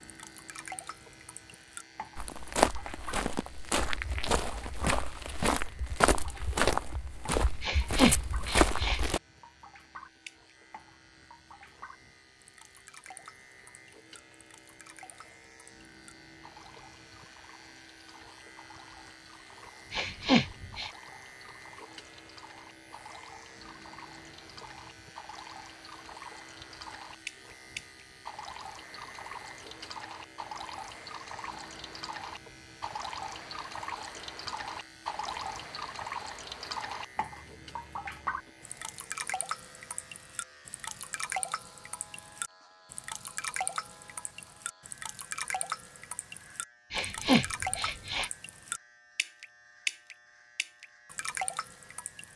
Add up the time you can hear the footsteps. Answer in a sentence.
The footsteps can be heard for 7 seconds in total.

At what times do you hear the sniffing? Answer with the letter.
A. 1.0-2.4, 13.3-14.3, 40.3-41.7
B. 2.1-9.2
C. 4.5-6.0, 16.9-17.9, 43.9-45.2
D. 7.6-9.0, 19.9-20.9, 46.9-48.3
D.